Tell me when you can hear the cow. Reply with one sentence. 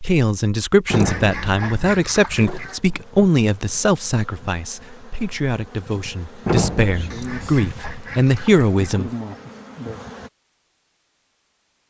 The cow can be heard from 0.9 to 2.4 s and from 6.5 to 8.0 s.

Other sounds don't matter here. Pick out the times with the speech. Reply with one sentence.
You can hear the speech from 0.0 to 9.1 s.